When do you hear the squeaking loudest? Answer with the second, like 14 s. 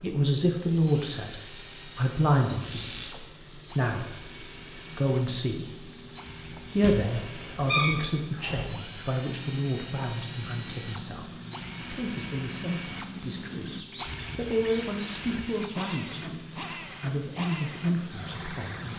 8 s.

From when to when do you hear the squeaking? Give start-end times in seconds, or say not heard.
2.6-3.1, 6.8-8.7, 13.7-16.1.